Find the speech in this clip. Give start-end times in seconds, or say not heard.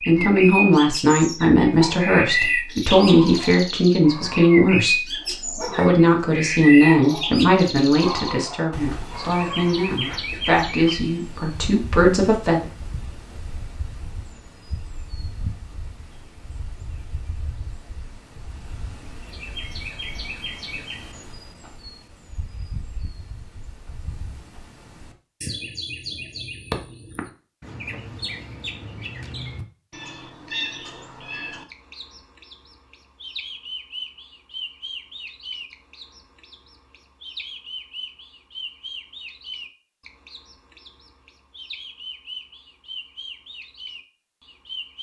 0.1-12.7.